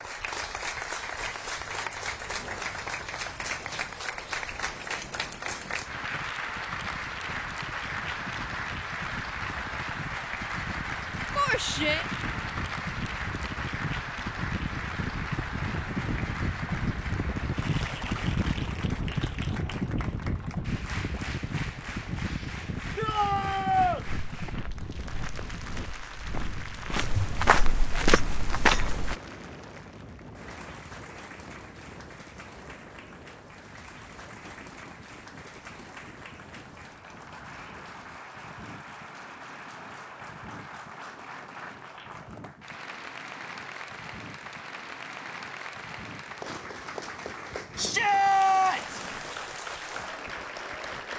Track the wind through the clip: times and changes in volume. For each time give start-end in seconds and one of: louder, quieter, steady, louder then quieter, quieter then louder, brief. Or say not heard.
0.0-51.1 louder then quieter.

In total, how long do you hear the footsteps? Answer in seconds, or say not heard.
5 s.